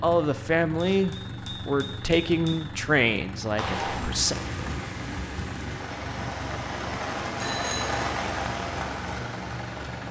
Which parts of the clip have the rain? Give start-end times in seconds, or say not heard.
3.5-10.0.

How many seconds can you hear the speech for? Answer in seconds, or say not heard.
4 s.